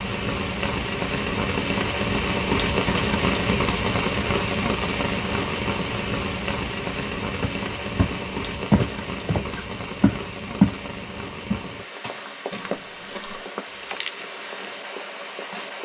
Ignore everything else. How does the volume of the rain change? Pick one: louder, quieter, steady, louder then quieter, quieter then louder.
quieter.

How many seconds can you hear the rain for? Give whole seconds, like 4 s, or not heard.
16 s.